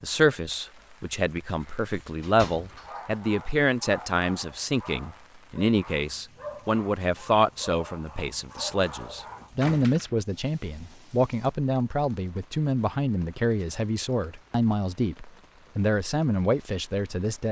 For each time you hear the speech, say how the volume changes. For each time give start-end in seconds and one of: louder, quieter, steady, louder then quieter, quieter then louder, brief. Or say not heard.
0.0-17.4 steady.